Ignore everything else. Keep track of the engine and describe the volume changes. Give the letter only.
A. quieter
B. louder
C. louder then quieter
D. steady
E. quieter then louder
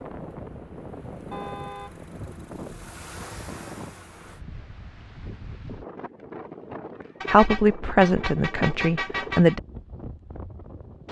B.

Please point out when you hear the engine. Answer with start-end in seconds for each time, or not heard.
0.0-4.5.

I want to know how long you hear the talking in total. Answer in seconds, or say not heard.
2 s.